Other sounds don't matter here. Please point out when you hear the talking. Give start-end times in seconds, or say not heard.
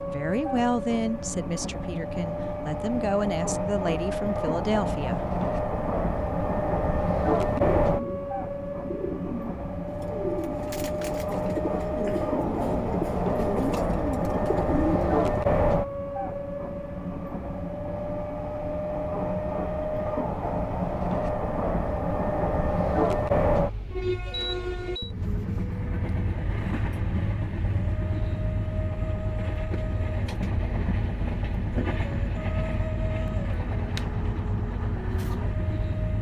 0.1-5.2.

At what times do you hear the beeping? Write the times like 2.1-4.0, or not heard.
24.3-25.1.